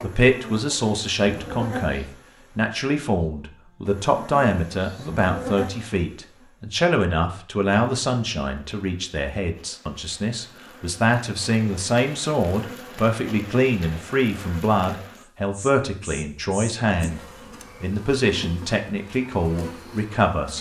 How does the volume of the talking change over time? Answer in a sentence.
The volume of the talking stays about the same.